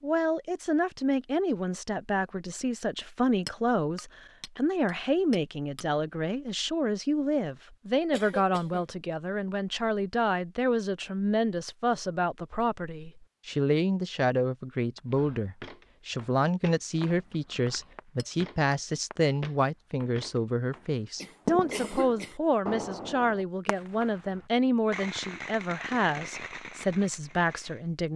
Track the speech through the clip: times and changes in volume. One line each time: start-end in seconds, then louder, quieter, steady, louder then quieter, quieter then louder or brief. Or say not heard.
0.0-28.1 steady.